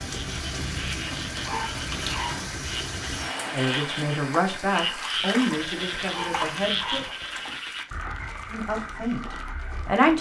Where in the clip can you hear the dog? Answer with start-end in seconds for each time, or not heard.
1.1-2.5, 5.8-7.1.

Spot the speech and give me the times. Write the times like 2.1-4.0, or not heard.
3.5-7.0, 8.5-10.1.